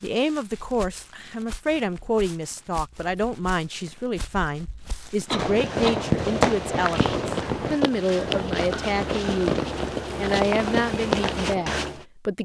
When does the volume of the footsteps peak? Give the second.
11 s.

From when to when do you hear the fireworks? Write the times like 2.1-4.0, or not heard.
5.3-11.8.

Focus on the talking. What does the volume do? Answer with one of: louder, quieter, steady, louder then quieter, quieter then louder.
steady.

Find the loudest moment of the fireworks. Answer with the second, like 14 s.
6 s.